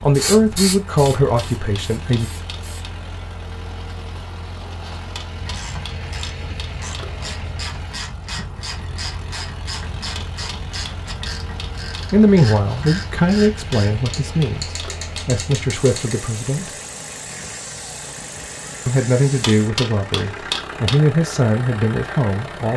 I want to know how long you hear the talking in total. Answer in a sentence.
The talking can be heard for 11 seconds in total.